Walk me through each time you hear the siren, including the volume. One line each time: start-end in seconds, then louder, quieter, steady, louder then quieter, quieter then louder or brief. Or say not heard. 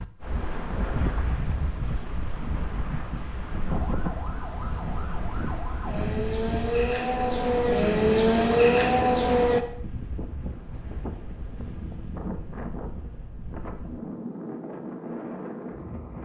3.6-9.7 louder.